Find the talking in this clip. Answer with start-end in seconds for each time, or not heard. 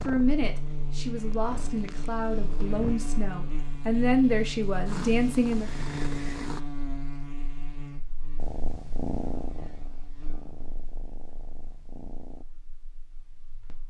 0.1-5.7.